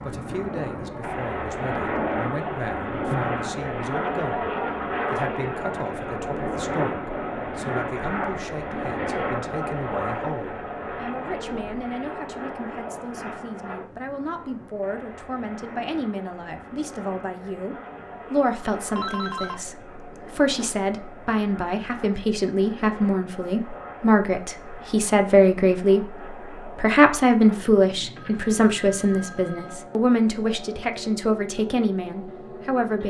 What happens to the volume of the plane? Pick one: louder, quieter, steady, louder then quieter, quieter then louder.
quieter.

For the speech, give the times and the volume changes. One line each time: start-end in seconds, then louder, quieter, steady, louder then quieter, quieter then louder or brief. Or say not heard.
0.0-33.0 louder.